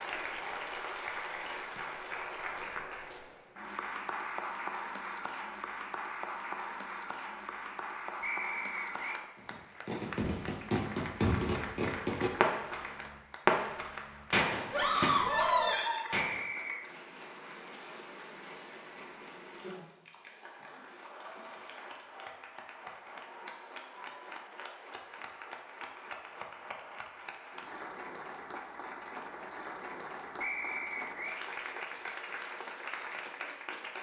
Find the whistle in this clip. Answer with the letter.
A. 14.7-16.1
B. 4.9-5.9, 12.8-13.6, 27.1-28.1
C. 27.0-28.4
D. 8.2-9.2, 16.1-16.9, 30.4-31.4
D.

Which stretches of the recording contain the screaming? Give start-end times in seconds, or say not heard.
14.7-16.1.